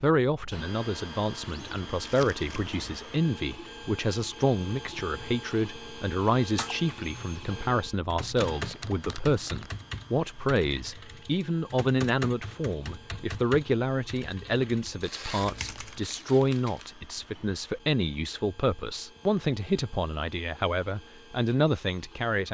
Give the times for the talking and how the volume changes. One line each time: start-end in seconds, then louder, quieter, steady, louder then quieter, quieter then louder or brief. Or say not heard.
0.0-22.5 steady.